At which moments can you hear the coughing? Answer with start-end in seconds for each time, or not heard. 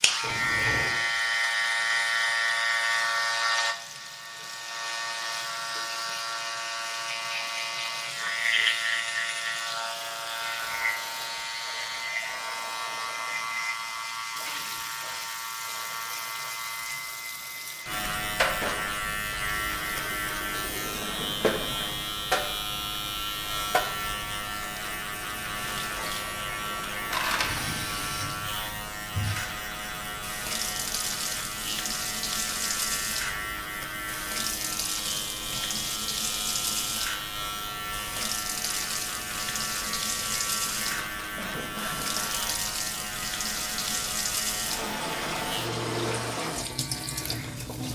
20.6-22.0, 40.9-42.4.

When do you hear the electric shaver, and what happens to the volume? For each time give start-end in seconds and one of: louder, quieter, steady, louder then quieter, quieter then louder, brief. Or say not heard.
0.0-47.9 quieter.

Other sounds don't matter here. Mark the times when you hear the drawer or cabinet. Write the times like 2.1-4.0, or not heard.
0.1-1.0.